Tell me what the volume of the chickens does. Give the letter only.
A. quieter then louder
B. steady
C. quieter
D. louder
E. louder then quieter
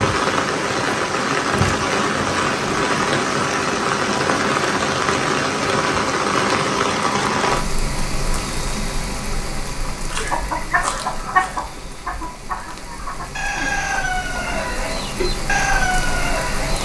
A.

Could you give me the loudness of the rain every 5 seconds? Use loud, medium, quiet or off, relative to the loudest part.
loud, loud, quiet, medium.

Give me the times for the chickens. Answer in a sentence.
The chickens can be heard from 9.9 to 16.8 s.